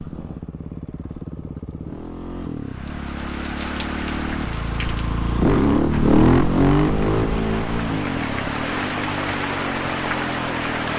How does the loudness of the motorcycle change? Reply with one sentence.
The loudness of the motorcycle goes up, then down.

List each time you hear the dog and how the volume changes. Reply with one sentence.
You can't hear the dog here.